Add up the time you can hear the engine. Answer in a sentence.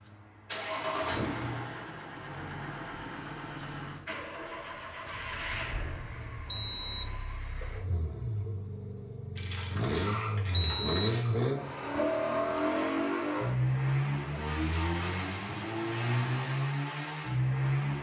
You can hear the engine for 18 seconds altogether.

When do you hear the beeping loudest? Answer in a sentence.
The loudest moment of the beeping is at 11 seconds.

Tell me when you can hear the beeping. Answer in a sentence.
The beeping can be heard from 6.5 to 7.2 s and from 10.5 to 11.2 s.